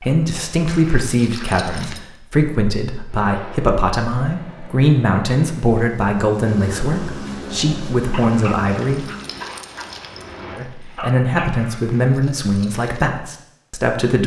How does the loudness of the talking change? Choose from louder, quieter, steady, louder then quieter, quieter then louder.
steady.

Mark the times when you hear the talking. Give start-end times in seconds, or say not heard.
0.0-9.1, 10.6-14.2.